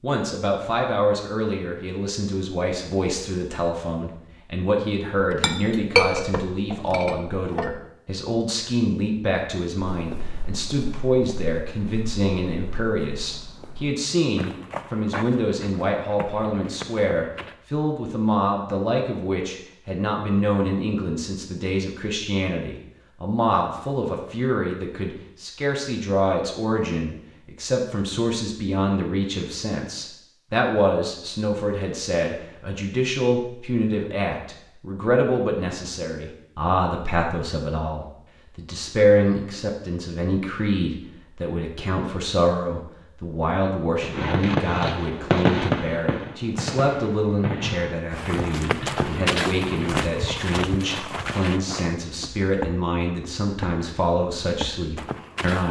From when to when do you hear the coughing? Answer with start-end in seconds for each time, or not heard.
not heard.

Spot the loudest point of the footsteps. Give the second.
49 s.